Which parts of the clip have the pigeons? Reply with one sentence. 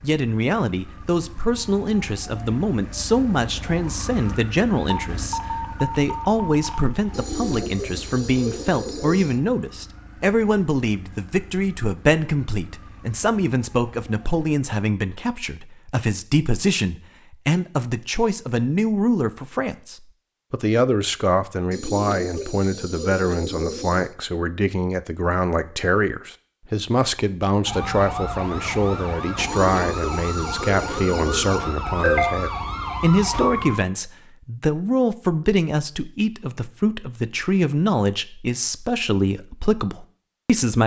You can hear the pigeons from 7.1 to 9.4 s, from 21.7 to 24.1 s and from 29.4 to 31.6 s.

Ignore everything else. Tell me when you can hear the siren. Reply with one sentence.
You can hear the siren from 0.0 to 14.6 s and from 27.6 to 33.8 s.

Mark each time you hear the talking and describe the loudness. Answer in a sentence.
You can hear the talking from 0.0 to 40.8 s, at a steady volume.